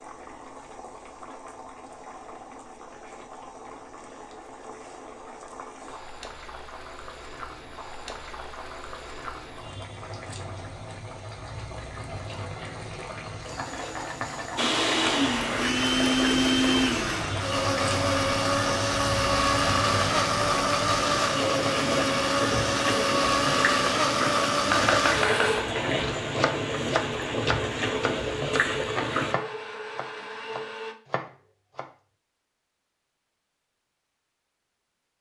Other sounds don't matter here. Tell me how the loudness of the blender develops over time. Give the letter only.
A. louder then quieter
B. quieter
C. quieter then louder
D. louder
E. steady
B.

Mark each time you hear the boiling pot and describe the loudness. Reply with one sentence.
The boiling pot can be heard from 0.0 to 29.4 s, getting louder.